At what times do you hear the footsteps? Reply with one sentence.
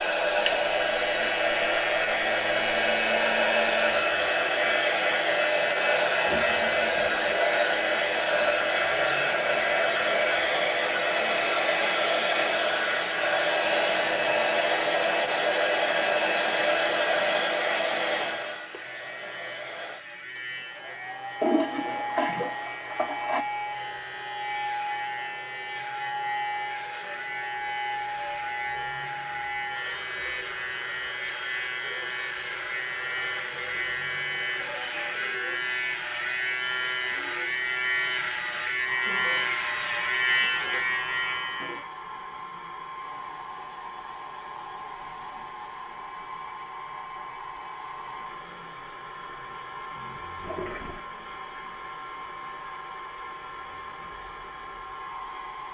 The footsteps can't be heard in this clip.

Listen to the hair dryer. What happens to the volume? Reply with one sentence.
The loudness of the hair dryer goes down.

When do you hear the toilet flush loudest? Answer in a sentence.
The volume of the toilet flush peaks at 22 seconds.